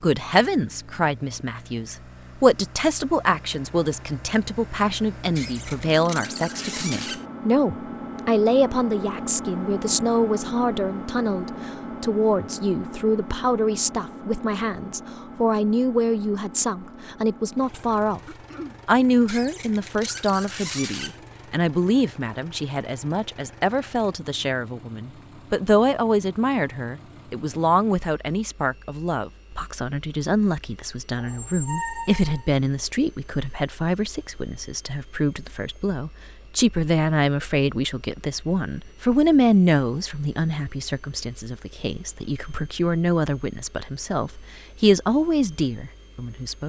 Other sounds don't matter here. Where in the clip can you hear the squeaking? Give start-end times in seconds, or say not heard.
5.3-7.2, 19.2-21.1, 31.2-32.5.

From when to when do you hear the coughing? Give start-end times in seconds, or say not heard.
18.2-18.8.